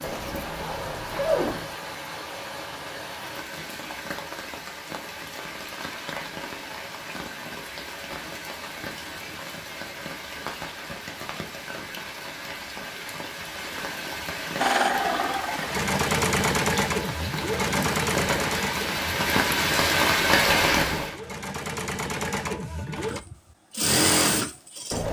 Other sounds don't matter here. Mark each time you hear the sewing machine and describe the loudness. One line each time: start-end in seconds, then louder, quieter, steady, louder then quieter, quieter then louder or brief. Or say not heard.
14.6-25.0 quieter then louder.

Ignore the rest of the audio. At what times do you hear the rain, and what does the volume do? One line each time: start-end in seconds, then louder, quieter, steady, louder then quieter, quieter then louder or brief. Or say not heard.
0.0-21.1 louder.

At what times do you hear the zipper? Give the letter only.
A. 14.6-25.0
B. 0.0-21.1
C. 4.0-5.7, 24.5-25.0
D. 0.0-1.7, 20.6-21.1
D.